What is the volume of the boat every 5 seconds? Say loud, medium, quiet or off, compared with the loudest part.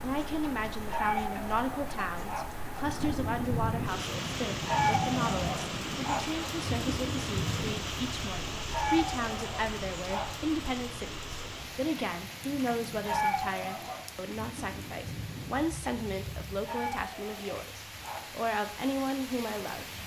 loud, loud, quiet, medium.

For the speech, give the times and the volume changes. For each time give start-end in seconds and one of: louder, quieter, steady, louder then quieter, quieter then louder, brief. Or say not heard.
0.0-20.0 steady.